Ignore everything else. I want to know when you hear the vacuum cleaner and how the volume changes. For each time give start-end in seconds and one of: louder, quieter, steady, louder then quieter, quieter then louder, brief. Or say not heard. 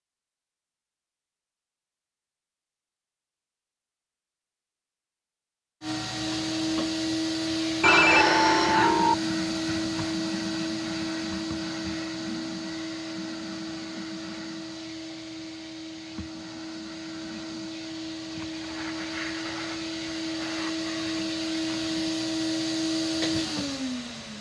5.8-24.3 quieter then louder.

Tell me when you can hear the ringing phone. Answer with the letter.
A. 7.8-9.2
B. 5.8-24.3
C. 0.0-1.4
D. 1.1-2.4
A.